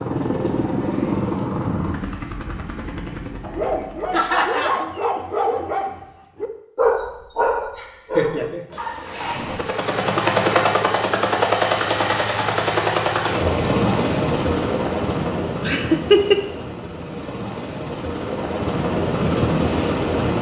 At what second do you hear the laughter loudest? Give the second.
16 s.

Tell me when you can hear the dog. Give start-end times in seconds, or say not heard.
3.4-9.6.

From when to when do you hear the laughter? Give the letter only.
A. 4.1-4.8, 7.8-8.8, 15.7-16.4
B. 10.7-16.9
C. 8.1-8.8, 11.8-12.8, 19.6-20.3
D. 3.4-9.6
A.